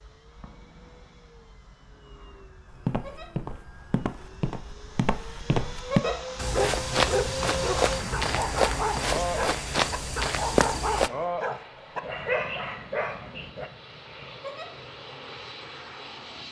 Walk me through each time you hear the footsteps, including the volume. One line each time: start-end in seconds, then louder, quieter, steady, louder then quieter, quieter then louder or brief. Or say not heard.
2.7-11.1 louder.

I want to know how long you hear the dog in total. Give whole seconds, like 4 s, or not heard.
8 s.